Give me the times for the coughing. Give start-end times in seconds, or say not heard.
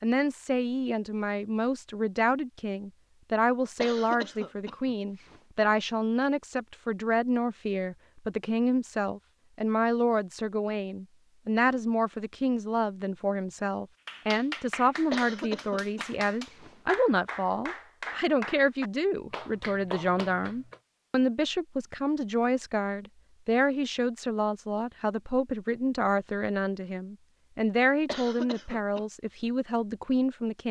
3.8-5.4, 15.1-16.8, 28.1-29.0.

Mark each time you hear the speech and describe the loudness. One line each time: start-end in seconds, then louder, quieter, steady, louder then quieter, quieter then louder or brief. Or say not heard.
0.0-30.6 steady.